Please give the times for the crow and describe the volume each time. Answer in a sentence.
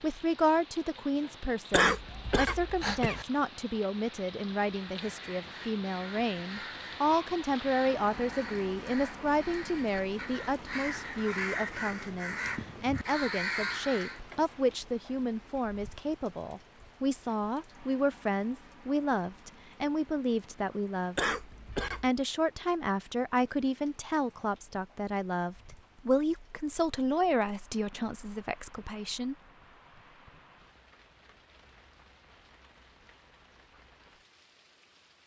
The crow can be heard from 4.8 to 14.2 s, getting louder.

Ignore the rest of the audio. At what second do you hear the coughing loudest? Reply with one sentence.
The volume of the coughing peaks at 2 seconds.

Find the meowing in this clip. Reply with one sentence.
The meowing can't be heard in this clip.